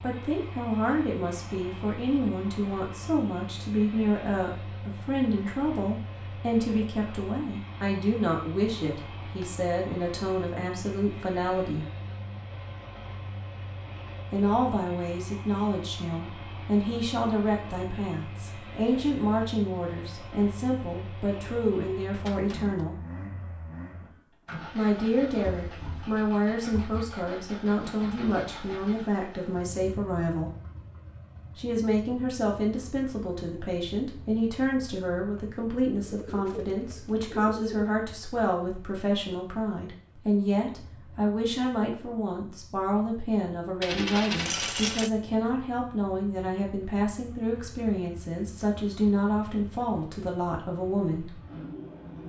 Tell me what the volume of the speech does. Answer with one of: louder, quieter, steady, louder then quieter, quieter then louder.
steady.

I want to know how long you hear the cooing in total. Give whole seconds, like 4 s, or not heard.
2 s.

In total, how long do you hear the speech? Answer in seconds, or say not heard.
46 s.